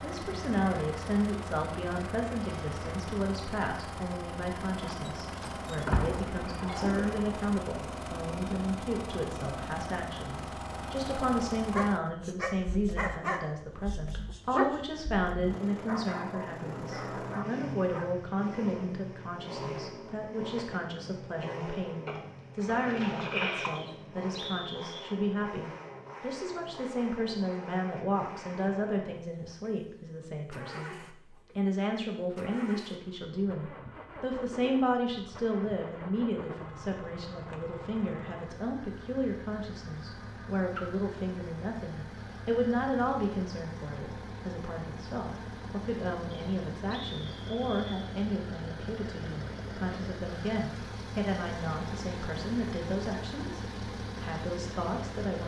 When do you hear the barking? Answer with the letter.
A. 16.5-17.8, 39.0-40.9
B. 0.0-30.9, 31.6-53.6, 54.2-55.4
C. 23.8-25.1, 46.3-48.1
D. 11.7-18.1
D.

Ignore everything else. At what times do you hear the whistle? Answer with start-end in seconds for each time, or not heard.
23.8-25.1, 46.3-48.1.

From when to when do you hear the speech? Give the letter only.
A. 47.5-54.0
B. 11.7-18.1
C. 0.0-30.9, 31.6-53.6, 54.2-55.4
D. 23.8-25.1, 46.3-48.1
C.